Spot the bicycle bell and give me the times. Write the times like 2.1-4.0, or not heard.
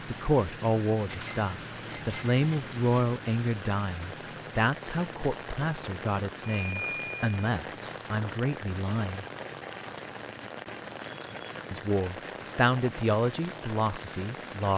1.1-2.8, 6.4-7.3, 10.9-11.4.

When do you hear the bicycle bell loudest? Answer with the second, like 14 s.
7 s.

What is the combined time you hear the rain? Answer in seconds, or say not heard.
15 s.